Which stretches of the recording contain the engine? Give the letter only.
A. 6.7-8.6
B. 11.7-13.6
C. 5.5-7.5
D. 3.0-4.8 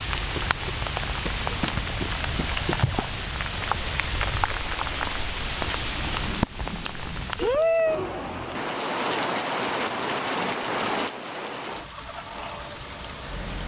B.